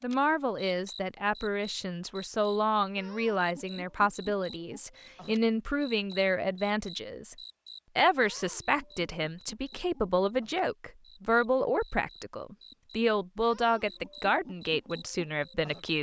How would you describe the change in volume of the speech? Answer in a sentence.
The volume of the speech stays about the same.